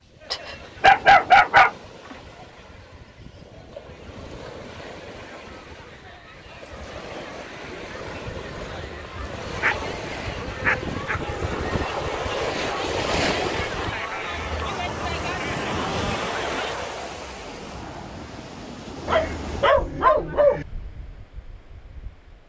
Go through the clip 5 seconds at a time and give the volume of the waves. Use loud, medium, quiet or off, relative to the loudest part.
quiet, medium, loud, loud, quiet.